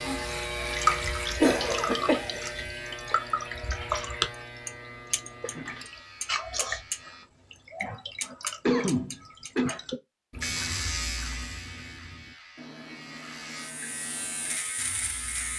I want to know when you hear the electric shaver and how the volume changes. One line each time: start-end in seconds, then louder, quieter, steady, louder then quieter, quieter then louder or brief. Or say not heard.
0.0-7.2 quieter
10.4-15.5 quieter then louder.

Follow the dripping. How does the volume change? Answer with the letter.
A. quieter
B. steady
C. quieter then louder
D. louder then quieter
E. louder
A.